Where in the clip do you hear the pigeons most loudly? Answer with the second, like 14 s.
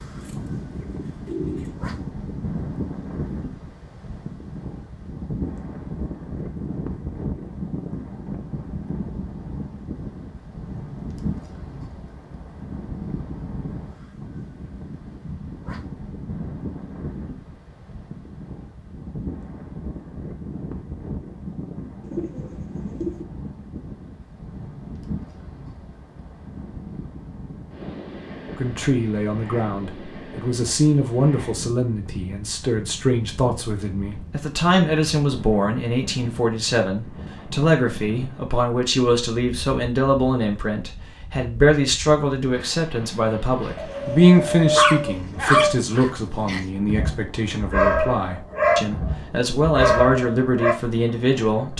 45 s.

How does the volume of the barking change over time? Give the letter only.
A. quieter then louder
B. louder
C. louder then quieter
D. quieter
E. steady
A.